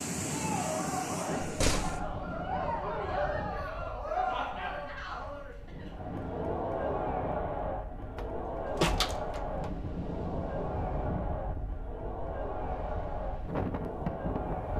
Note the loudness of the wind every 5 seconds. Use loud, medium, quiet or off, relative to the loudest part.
loud, medium, loud.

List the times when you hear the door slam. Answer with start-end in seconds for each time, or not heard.
1.4-2.0, 8.2-9.7.